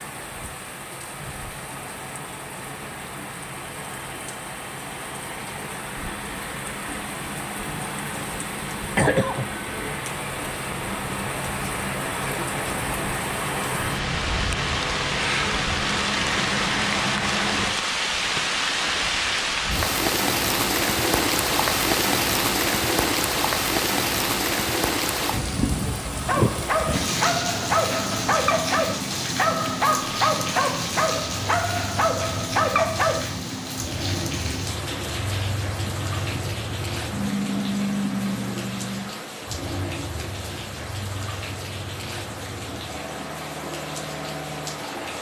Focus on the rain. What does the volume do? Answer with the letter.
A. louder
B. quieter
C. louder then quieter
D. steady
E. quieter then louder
C.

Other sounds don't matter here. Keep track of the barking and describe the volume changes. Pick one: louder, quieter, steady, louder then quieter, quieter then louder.
steady.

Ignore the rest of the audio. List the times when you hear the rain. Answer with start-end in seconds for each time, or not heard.
0.0-45.1.